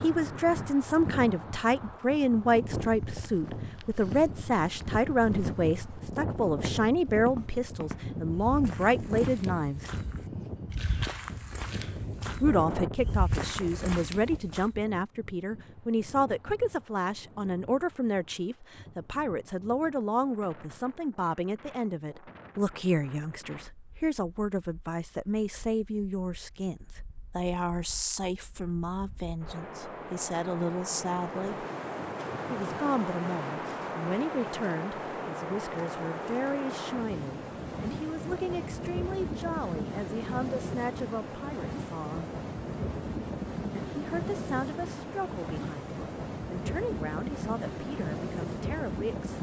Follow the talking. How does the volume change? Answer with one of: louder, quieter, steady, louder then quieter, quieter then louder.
quieter.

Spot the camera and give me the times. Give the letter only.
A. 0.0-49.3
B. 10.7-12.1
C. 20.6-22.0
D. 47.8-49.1
B.